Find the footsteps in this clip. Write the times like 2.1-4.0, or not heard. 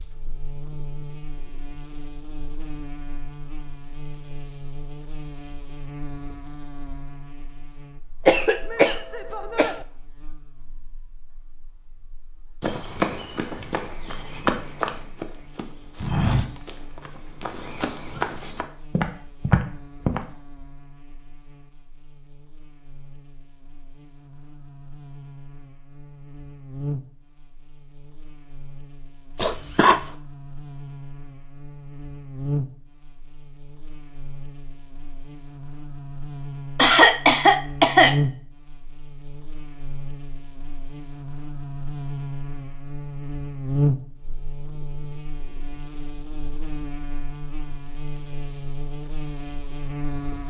12.6-20.2.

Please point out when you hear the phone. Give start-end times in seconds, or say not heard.
not heard.